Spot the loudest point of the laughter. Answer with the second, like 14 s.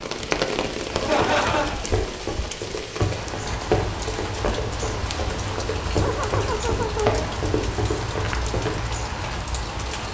1 s.